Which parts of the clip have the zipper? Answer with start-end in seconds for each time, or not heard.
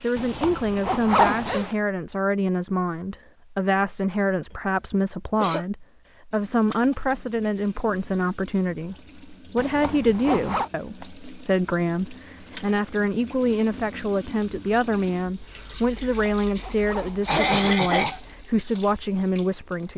0.1-1.8, 9.6-10.7, 15.9-17.8.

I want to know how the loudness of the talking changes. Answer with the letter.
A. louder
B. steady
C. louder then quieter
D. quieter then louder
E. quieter
B.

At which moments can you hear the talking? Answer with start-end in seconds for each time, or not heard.
0.0-19.9.